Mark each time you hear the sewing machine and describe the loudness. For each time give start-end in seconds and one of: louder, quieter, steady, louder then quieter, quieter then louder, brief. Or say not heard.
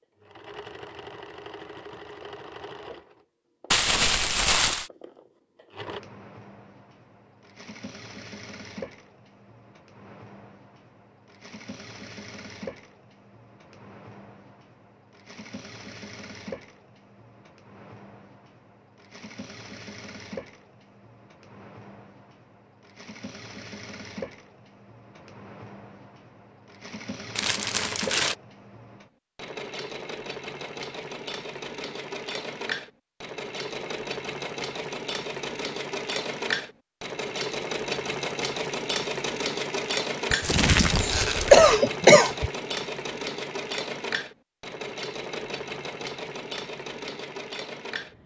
0.2-48.2 louder.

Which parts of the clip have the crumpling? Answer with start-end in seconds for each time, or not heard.
3.7-4.9, 27.4-28.4, 40.4-41.8.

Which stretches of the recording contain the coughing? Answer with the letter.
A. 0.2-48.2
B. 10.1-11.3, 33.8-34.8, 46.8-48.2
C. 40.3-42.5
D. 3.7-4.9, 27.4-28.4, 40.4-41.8
C.